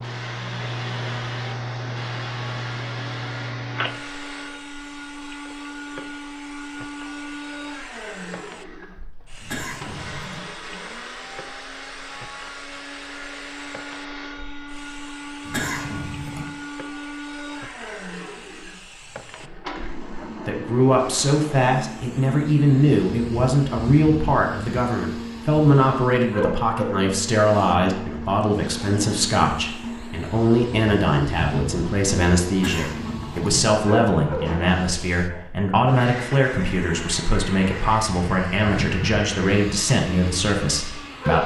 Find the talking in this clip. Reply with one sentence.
You can hear the talking from 20.2 to 41.4 s.